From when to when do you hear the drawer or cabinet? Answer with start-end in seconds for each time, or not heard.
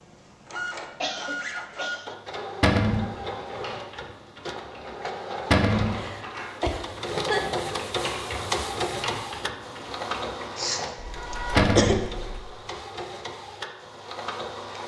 2.6-3.1, 5.5-6.0, 11.6-12.0.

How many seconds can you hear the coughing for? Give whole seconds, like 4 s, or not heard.
5 s.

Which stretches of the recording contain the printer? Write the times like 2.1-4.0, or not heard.
0.0-14.8.